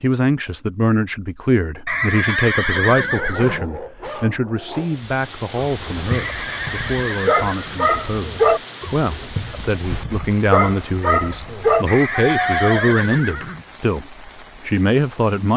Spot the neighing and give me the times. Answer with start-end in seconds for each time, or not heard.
1.9-3.6, 6.1-7.8, 11.8-13.7.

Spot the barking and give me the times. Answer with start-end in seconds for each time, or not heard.
3.0-12.9.